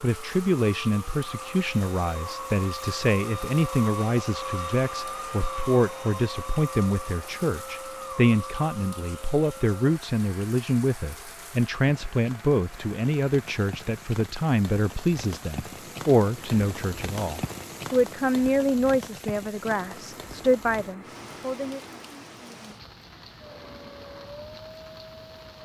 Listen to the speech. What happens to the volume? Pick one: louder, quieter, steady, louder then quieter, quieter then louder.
steady.